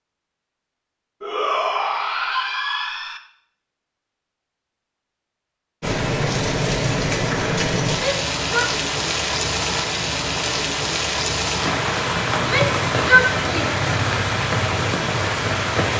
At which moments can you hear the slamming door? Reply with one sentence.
The slamming door can't be heard in this clip.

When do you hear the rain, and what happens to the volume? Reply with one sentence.
You can hear the rain from 5.8 to 15.9 s, at a steady volume.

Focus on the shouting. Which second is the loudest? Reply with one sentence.
The loudest moment of the shouting is at 13 seconds.